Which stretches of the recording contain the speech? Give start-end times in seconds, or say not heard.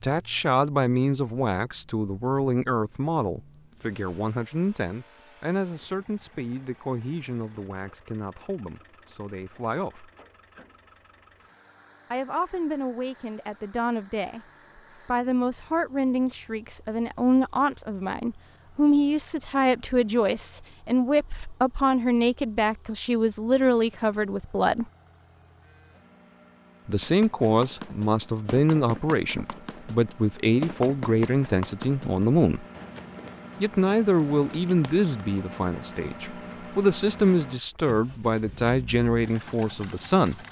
0.0-10.1, 12.1-14.4, 15.1-24.9, 26.9-32.6, 33.6-40.4.